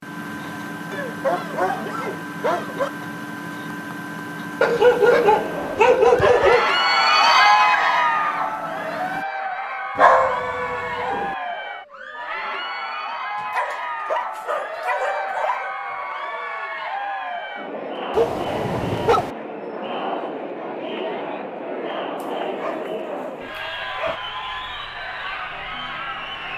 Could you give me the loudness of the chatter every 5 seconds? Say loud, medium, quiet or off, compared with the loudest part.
off, loud, medium, medium, medium, medium.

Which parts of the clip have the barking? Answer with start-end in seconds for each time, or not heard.
0.9-2.9, 4.6-6.7, 9.9-11.3, 13.4-15.8, 18.1-19.4, 22.2-24.2.